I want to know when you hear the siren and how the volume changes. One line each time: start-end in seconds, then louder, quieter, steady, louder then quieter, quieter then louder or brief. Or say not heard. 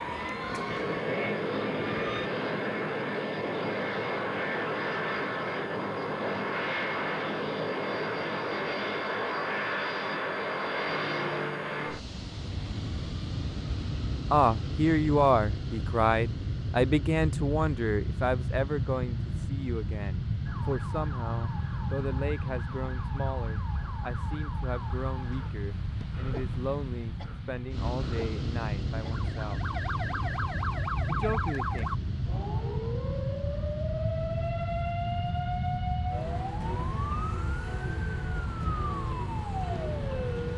0.0-2.3 brief
20.4-40.5 louder.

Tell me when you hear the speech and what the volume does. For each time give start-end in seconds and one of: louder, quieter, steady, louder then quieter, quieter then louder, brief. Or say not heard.
14.3-29.6 quieter
31.1-31.9 brief.